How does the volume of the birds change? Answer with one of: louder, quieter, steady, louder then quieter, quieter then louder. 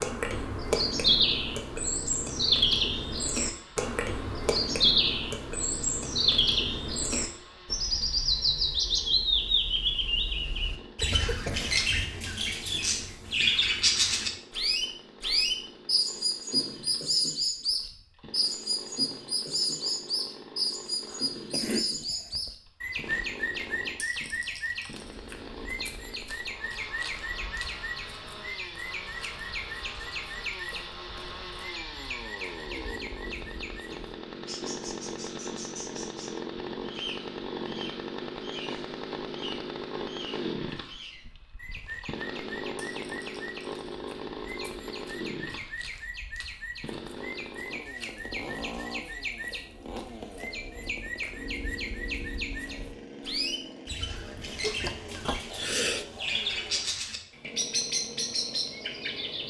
quieter then louder.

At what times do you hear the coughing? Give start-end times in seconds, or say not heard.
11.0-11.7, 21.1-22.6, 54.6-56.0.